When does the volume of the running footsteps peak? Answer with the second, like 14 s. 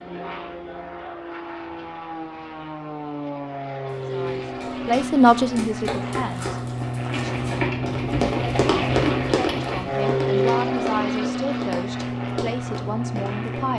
9 s.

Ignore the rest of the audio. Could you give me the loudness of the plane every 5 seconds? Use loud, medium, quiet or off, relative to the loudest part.
medium, loud, loud.